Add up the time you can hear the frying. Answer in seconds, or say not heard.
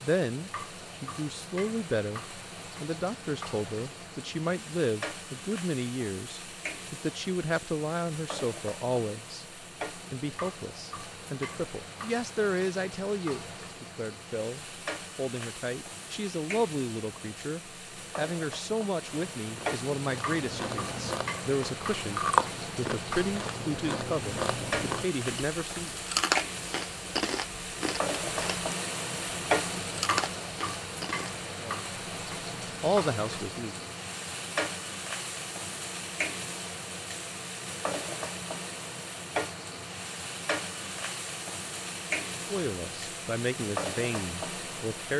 45 s.